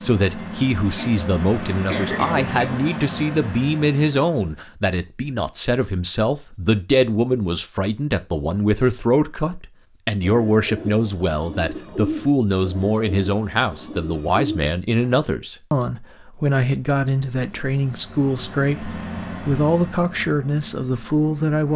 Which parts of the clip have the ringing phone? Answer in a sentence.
The ringing phone can't be heard in this clip.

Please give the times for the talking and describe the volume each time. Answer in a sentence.
The talking can be heard from 0.0 to 21.7 s, at a steady volume.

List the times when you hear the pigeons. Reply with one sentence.
You can hear the pigeons from 10.2 to 15.2 s.